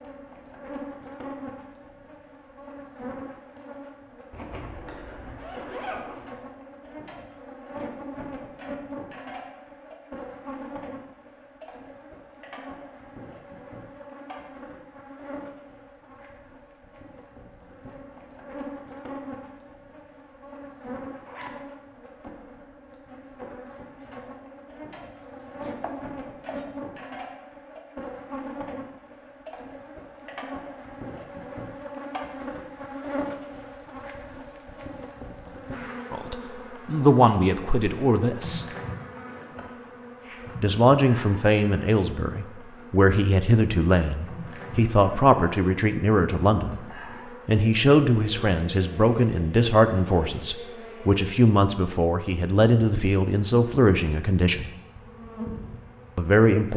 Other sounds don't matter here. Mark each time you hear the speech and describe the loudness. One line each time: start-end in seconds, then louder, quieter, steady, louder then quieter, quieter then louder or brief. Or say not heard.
36.1-38.6 brief
40.6-54.7 steady
56.1-56.7 brief.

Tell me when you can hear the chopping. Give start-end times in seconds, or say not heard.
25.1-26.7.